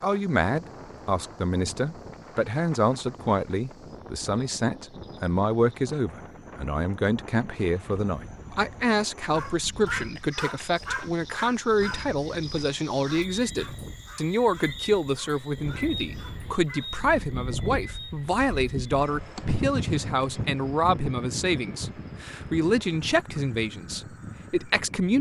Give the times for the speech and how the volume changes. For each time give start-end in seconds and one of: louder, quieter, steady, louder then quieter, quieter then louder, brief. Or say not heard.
0.0-25.1 steady.